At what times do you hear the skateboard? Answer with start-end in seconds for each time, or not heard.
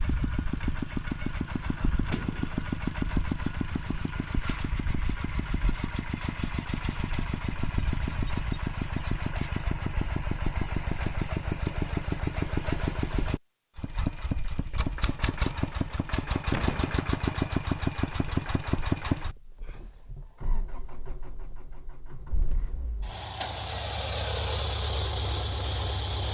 not heard.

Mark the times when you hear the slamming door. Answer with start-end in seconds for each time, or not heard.
1.6-2.7, 16.5-17.0.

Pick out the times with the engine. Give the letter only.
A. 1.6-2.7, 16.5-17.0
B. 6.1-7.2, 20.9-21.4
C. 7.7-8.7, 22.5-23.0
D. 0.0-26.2
D.